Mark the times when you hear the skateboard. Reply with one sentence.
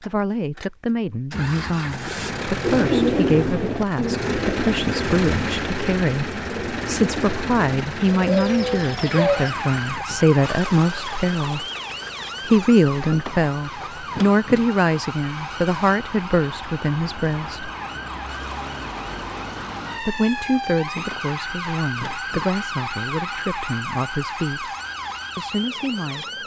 The skateboard can't be heard in this clip.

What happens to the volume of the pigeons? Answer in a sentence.
The volume of the pigeons goes down, then up.